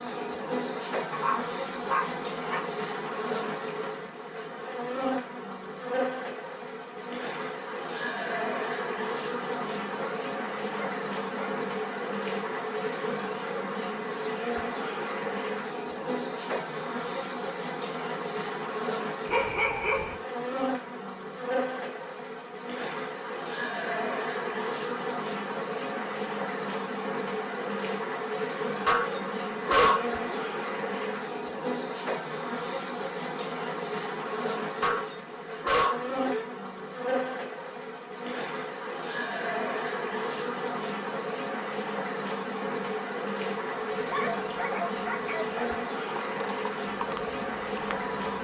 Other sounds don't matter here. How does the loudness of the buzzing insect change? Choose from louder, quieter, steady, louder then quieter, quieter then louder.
steady.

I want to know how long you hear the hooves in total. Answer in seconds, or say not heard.
2 s.